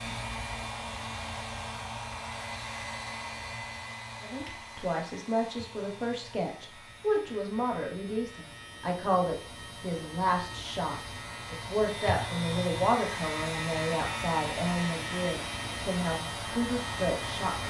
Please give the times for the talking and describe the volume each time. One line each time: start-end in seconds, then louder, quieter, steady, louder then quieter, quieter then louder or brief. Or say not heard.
4.2-17.6 steady.